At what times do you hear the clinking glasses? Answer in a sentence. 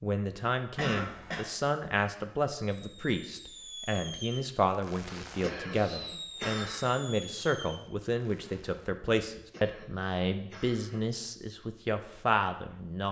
The clinking glasses can't be heard in this clip.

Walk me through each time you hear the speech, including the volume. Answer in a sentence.
You can hear the speech from 0.0 to 13.0 s, at a steady volume.